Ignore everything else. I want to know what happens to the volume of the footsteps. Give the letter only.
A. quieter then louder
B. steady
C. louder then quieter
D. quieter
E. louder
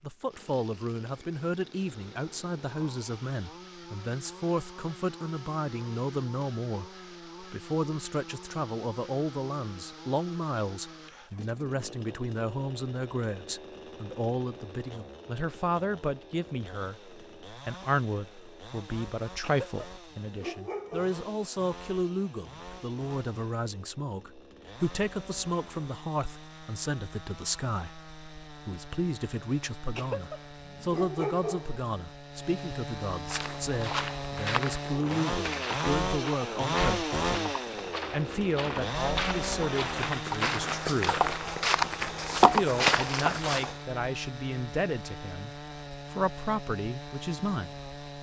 E.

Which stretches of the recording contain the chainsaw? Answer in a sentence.
You can hear the chainsaw from 0.2 to 48.1 s.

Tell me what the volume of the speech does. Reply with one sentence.
The loudness of the speech stays about the same.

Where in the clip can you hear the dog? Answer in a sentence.
The dog can be heard from 19.4 to 21.1 s and from 29.9 to 31.8 s.